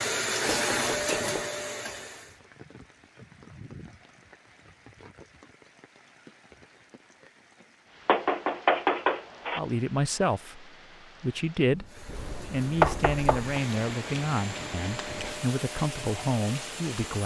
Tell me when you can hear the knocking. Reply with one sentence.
You can hear the knocking from 0.7 to 1.4 s, from 8.1 to 9.6 s and from 12.8 to 13.6 s.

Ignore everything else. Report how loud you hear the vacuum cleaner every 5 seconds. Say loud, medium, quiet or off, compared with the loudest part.
loud, off, quiet, quiet.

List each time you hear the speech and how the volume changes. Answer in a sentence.
The speech can be heard briefly from 9.6 to 11.8 s; and from 12.5 to 17.2 s, getting quieter then louder.